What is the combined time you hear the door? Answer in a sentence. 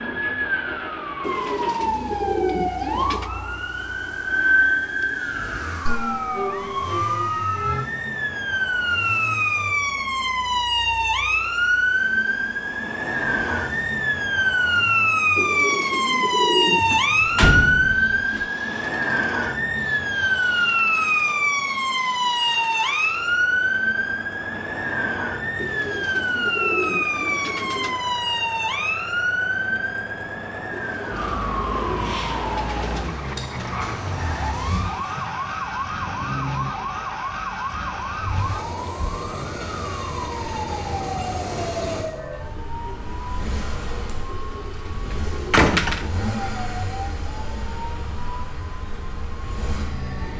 The door can be heard for 2 seconds in total.